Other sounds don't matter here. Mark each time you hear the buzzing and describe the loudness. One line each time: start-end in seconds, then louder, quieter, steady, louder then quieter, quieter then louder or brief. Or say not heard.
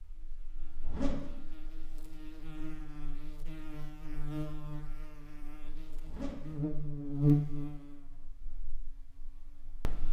0.0-10.0 louder then quieter.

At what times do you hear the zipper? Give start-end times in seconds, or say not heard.
0.6-1.4, 5.8-6.7.